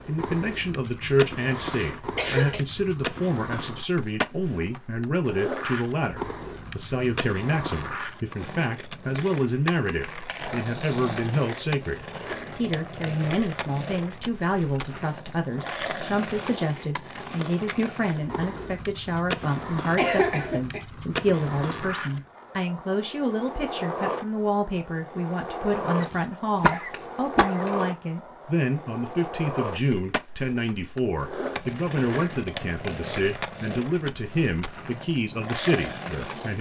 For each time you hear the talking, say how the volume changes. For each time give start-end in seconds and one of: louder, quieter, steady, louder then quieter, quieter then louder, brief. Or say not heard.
0.1-36.5 steady.